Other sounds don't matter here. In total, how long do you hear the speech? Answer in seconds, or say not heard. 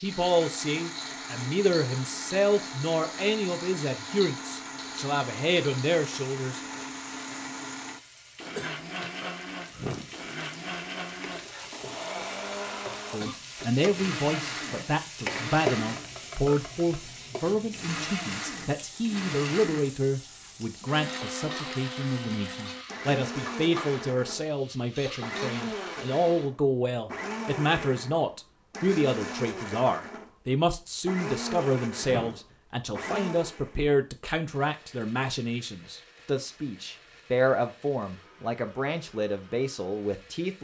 34 s.